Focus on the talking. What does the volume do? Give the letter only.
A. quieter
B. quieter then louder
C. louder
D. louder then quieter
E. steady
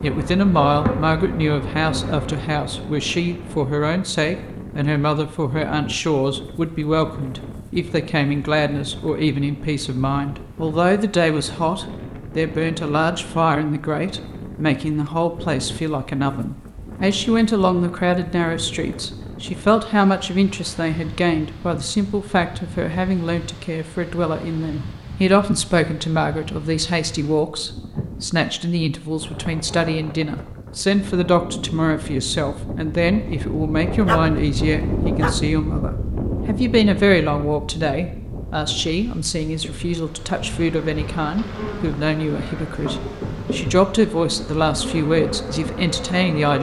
E.